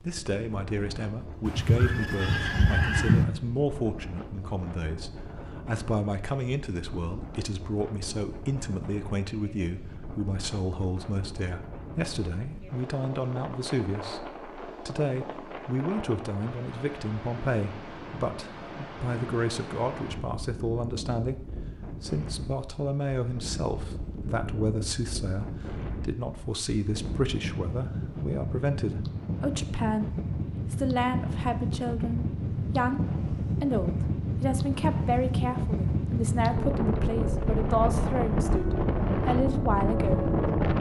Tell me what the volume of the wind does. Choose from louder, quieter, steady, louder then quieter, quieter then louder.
louder.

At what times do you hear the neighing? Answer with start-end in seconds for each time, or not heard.
1.4-3.2.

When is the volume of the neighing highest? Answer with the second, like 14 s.
3 s.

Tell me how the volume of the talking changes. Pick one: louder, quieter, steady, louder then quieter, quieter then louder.
steady.